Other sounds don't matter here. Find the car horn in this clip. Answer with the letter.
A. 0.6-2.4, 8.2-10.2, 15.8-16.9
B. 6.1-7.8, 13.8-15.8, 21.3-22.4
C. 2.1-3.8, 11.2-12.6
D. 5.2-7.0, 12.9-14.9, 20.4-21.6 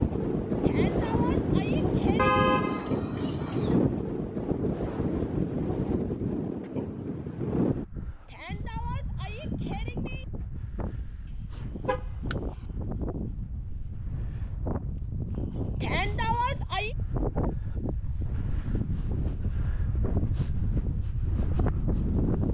C.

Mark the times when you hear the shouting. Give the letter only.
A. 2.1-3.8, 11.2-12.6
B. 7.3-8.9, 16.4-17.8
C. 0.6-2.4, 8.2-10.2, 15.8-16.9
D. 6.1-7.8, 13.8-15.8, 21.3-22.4
C.